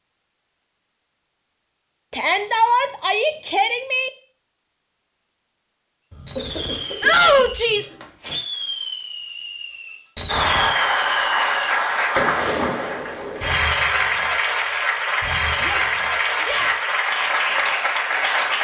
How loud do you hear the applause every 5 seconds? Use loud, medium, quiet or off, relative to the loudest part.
off, off, loud, loud.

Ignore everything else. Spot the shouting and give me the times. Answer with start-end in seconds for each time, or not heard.
2.1-4.1, 7.0-8.0, 15.6-16.9.